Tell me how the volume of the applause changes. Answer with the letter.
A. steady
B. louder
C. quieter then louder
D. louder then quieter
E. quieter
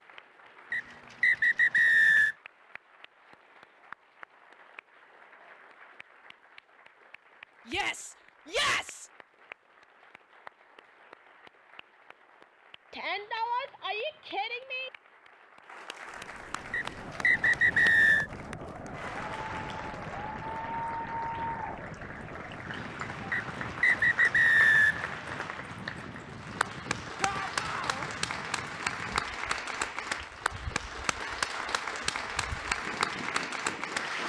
B.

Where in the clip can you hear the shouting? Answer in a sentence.
The shouting can be heard from 7.7 to 9.1 s, from 12.9 to 14.9 s and from 27.2 to 28.1 s.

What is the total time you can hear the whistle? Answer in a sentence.
The whistle can be heard for 5 seconds in total.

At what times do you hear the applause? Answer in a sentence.
You can hear the applause from 0.0 to 34.2 s.